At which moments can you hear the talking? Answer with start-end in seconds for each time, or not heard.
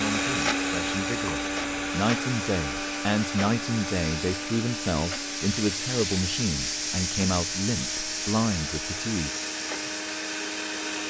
0.0-9.3.